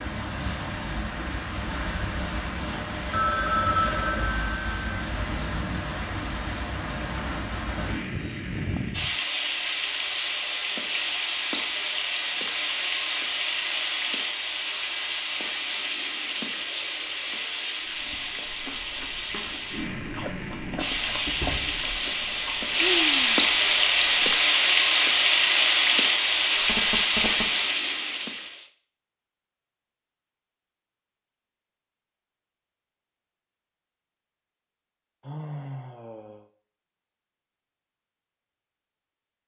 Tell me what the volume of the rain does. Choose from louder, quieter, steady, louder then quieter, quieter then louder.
louder.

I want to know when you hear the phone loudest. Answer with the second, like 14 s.
4 s.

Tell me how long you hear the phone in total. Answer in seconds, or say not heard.
3 s.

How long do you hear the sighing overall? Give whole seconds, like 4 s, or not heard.
3 s.